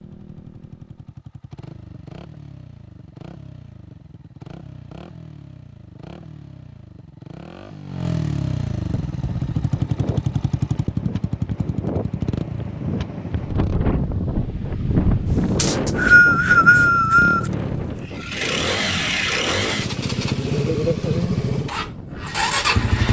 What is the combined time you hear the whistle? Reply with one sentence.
The whistle can be heard for 2 seconds in total.